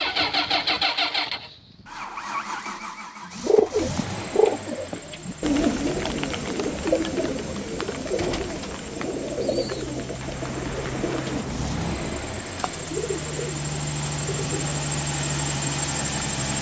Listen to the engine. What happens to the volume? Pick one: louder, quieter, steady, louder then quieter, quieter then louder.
quieter then louder.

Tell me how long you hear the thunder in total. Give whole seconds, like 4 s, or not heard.
2 s.